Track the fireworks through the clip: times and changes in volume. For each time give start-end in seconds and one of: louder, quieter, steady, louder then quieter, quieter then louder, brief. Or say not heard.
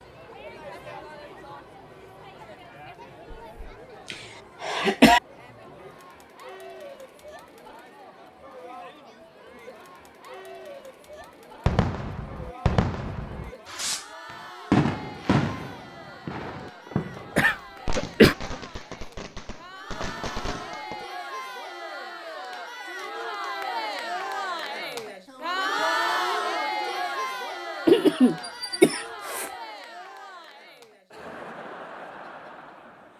11.7-21.1 louder then quieter.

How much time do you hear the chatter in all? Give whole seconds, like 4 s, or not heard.
33 s.